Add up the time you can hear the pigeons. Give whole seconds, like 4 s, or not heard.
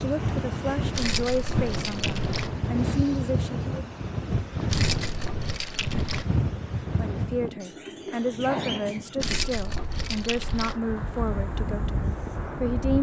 2 s.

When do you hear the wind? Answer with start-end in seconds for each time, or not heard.
0.0-12.9.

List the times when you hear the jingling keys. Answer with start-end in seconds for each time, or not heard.
0.9-2.5, 4.7-6.2, 9.2-10.8.